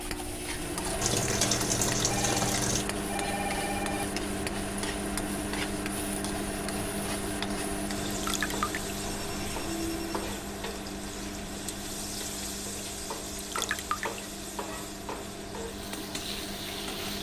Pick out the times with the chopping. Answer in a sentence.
The chopping can't be heard in this clip.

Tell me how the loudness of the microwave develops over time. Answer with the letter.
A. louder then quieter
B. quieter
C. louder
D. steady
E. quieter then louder
B.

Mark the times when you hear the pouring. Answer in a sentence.
You can hear the pouring from 1.0 to 2.9 s, from 8.1 to 8.8 s and from 13.3 to 14.2 s.